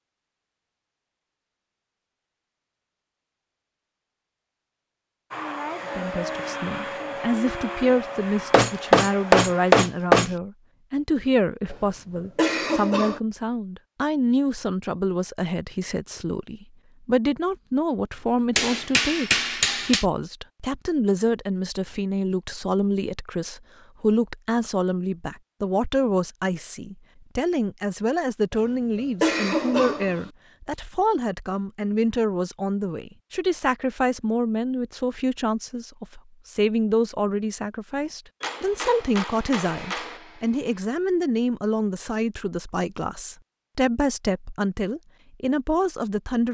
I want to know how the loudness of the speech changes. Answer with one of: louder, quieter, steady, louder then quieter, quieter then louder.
steady.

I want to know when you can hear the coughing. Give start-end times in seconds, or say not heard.
11.7-13.2, 28.5-30.3.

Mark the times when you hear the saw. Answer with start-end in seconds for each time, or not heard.
not heard.